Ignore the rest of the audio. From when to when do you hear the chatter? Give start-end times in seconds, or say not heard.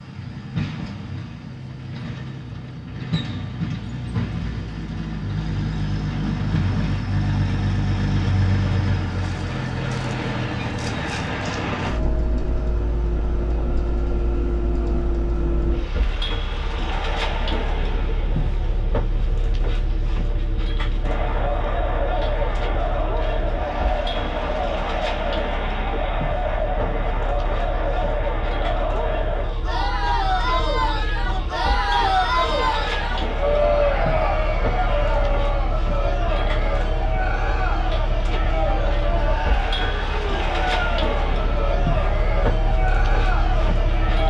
21.0-44.2.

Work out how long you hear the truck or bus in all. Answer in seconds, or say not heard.
44 s.